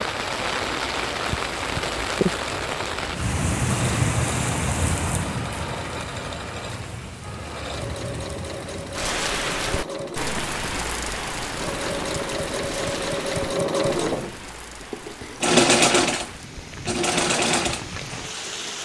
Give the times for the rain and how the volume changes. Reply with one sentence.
The rain can be heard from 0.0 to 18.7 s, getting quieter.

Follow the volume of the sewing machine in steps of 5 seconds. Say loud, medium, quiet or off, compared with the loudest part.
quiet, quiet, medium, loud.